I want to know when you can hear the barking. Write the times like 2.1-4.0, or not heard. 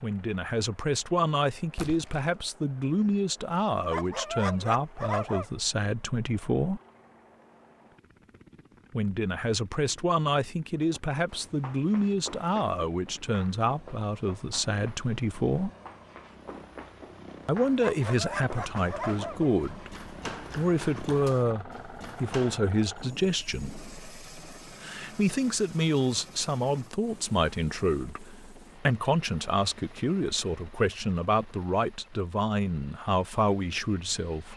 3.9-5.5, 17.8-19.5.